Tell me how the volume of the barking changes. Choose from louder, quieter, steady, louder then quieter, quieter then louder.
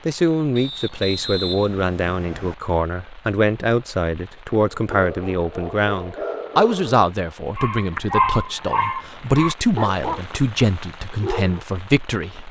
louder then quieter.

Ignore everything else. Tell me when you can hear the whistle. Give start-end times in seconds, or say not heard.
0.6-2.5.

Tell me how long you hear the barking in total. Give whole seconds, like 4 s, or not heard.
7 s.